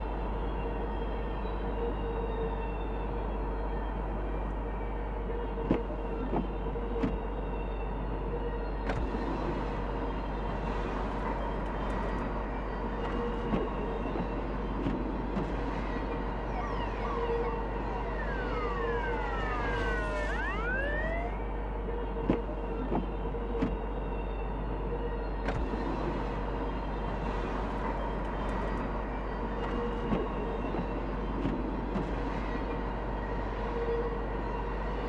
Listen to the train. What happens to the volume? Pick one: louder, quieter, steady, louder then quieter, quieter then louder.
steady.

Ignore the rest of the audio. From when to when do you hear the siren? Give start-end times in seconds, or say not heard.
16.4-21.4.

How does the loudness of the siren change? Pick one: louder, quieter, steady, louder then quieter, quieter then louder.
louder.